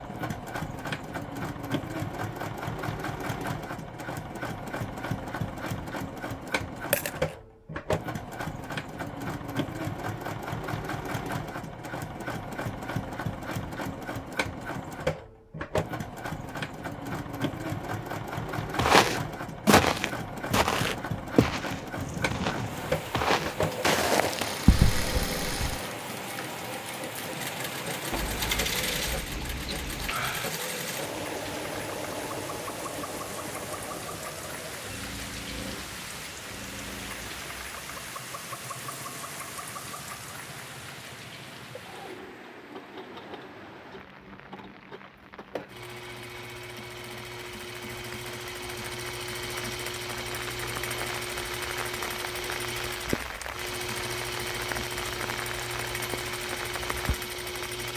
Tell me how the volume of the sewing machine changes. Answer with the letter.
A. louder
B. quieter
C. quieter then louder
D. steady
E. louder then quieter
C.